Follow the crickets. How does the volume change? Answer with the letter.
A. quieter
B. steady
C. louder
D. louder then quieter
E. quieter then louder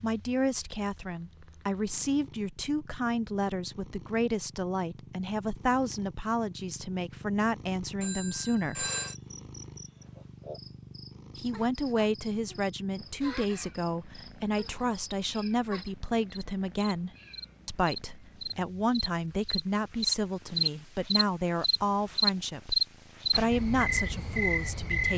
C.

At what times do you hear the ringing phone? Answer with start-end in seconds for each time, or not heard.
8.0-9.2.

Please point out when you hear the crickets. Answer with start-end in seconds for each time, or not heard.
9.0-25.1.